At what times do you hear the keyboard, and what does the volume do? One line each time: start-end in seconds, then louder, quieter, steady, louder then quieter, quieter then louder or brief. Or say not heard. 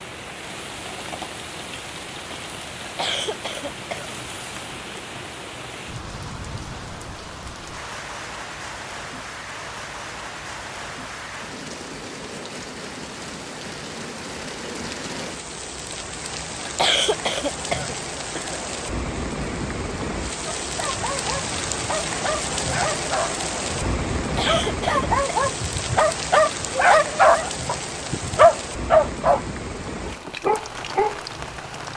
not heard.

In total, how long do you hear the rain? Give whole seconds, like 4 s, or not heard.
32 s.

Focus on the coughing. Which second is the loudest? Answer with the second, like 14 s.
17 s.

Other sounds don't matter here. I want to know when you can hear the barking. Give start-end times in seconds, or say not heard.
20.6-31.2.